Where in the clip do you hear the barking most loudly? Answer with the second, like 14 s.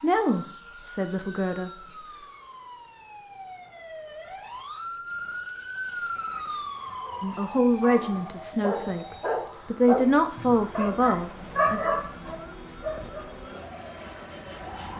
12 s.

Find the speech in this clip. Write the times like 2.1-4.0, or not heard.
0.0-1.8, 7.2-11.8.